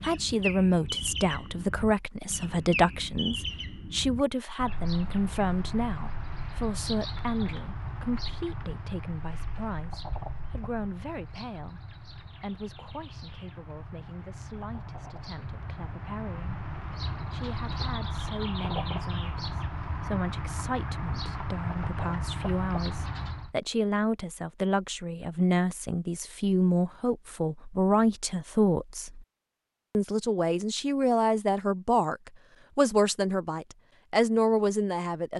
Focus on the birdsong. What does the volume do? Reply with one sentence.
The volume of the birdsong goes down, then up.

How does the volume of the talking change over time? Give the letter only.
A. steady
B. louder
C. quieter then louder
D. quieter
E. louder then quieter
C.